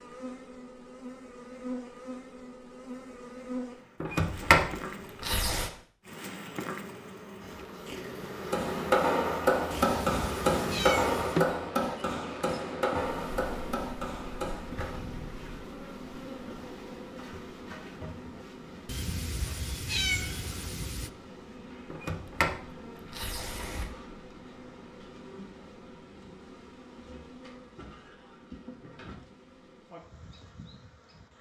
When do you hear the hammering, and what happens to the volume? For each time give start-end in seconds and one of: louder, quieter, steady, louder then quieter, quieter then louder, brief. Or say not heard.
8.2-15.0 quieter.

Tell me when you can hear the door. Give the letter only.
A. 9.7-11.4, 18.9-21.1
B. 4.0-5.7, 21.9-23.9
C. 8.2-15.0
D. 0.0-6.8
B.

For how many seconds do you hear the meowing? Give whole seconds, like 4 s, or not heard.
4 s.